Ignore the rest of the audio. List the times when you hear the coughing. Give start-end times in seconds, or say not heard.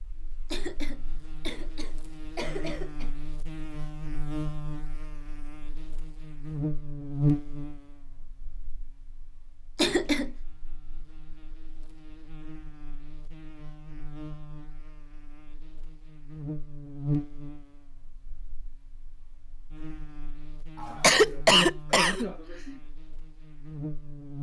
0.5-3.1, 9.8-10.3, 20.8-22.8.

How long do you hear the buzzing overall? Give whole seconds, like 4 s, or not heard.
24 s.